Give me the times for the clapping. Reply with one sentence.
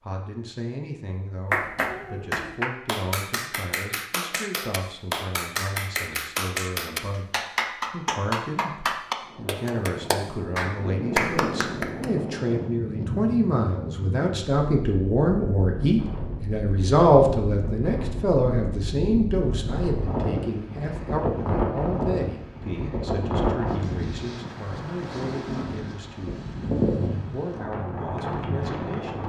The clapping can be heard from 1.5 to 12.1 s.